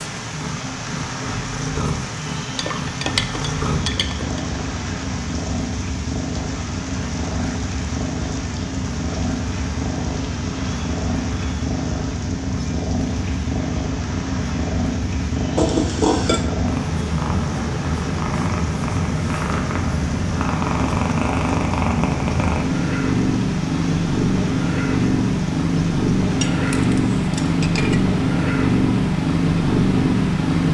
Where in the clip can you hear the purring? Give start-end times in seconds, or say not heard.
0.0-30.6.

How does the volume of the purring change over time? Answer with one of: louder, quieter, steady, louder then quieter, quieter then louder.
louder.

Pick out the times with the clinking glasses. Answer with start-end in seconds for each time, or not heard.
2.5-4.4, 15.6-16.5, 26.3-28.0.